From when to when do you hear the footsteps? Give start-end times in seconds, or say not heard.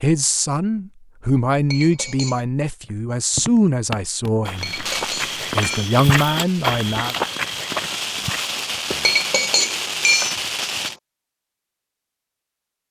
2.8-9.2.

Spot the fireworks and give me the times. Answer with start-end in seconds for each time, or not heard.
4.5-10.9.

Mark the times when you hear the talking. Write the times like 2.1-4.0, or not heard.
0.0-4.8, 5.5-7.2.